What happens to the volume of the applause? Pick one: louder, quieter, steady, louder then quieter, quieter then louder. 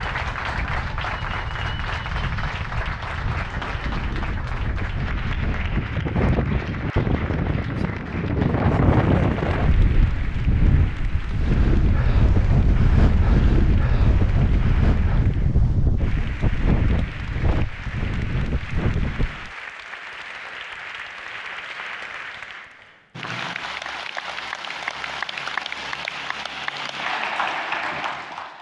quieter then louder.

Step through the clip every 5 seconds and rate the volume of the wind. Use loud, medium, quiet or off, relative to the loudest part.
medium, loud, loud, loud, off, off.